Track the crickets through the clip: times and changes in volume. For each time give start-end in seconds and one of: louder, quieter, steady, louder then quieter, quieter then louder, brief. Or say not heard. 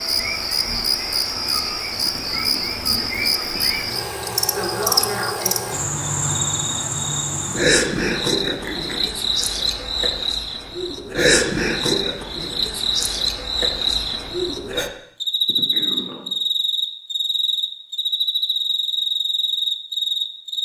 0.0-20.6 steady.